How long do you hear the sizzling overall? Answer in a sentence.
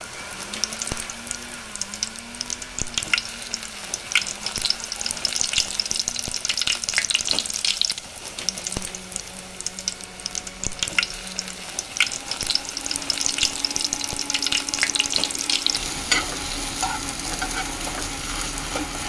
The sizzling can be heard for 19 seconds in total.